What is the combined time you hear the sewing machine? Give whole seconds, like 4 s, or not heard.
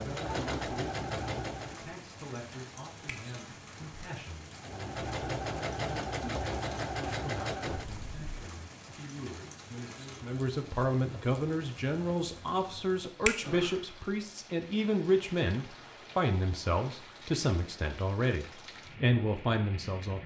6 s.